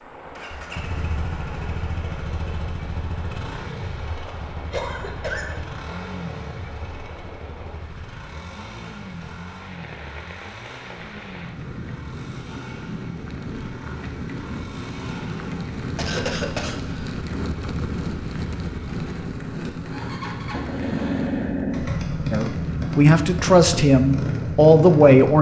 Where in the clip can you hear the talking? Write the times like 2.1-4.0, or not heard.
22.3-25.3.